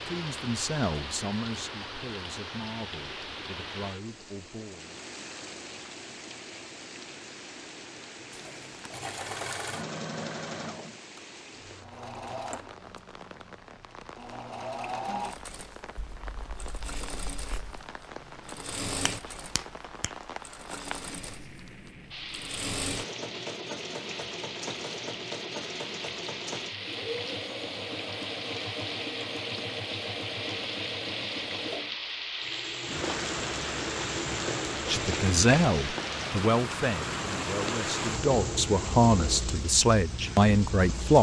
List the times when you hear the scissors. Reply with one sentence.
The scissors can be heard from 15.9 to 17.8 s.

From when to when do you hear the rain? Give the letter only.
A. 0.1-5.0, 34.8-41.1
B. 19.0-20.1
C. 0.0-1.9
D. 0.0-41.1
D.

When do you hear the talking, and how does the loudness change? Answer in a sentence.
You can hear the talking from 0.1 to 5.0 s, getting quieter then louder; and from 34.8 to 41.1 s, getting quieter then louder.